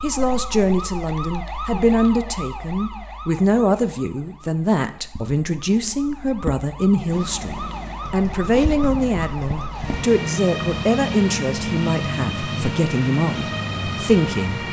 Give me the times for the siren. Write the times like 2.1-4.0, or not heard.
0.0-14.6.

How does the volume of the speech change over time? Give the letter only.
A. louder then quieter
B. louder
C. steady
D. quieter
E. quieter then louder
C.